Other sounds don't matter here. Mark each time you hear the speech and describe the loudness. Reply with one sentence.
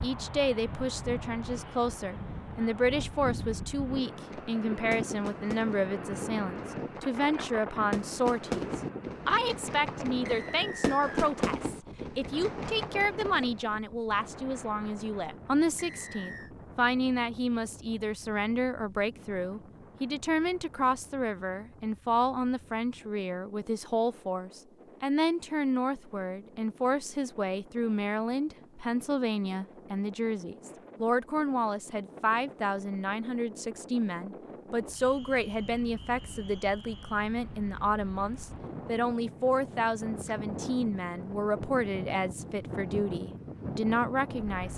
You can hear the speech from 0.0 to 44.7 s, at a steady volume.